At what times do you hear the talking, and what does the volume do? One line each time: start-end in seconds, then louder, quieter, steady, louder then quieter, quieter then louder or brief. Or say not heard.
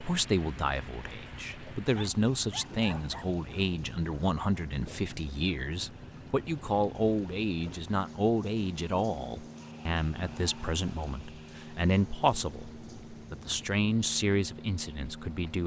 0.0-15.6 steady.